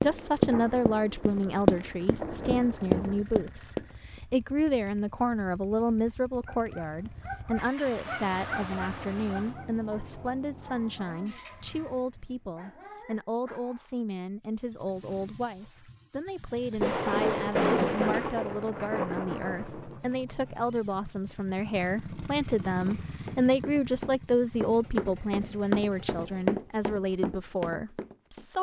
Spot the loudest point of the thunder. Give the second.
18 s.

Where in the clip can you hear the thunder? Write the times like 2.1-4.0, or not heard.
0.0-3.2, 16.8-20.0.